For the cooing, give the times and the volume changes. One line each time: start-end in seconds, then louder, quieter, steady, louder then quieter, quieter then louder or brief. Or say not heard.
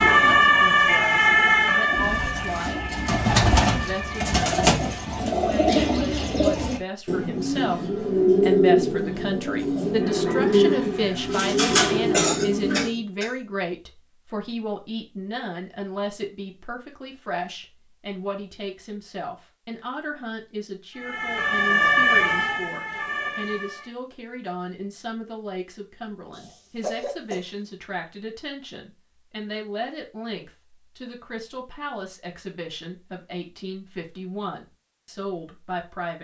1.9-12.9 steady.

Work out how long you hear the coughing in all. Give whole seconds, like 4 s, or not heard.
2 s.